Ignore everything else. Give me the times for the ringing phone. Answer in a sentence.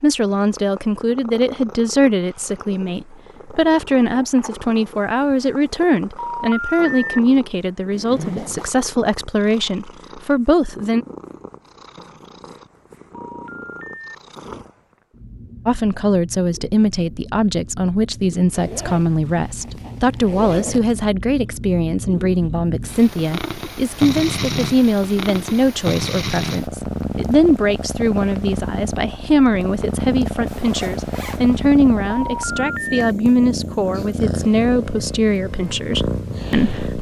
You can hear the ringing phone from 6.2 to 7.2 s, from 13.1 to 14.1 s and from 32.0 to 33.0 s.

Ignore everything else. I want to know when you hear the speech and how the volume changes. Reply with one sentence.
The speech can be heard from 0.0 to 11.1 s, at a steady volume; and from 15.7 to 36.9 s, at a steady volume.